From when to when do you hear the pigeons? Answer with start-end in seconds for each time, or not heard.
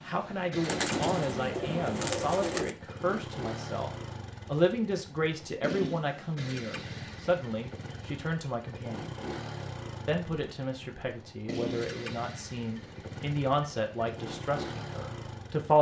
0.6-2.8.